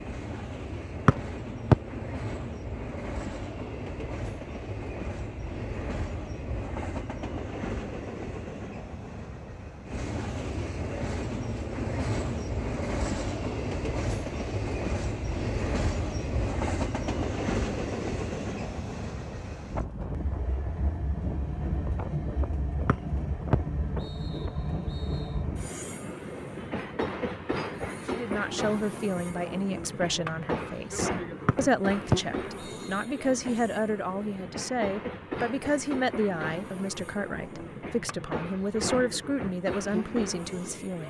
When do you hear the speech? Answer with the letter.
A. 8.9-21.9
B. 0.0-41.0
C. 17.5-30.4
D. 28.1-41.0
D.